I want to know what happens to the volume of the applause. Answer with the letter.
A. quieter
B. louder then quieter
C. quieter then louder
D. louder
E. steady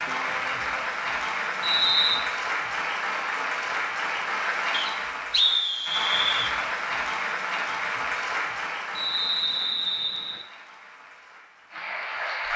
A.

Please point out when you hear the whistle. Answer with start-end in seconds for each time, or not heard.
1.6-2.2, 4.7-6.5, 8.9-10.4.